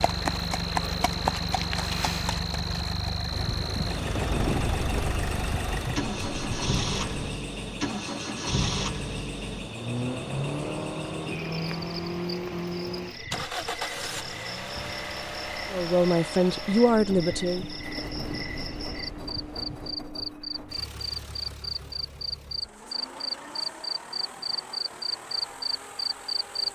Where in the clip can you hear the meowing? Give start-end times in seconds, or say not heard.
not heard.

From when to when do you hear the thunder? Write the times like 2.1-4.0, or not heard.
3.3-7.3, 17.1-20.0.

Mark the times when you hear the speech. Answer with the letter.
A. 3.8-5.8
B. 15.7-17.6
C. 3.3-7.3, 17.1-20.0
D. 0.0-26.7
B.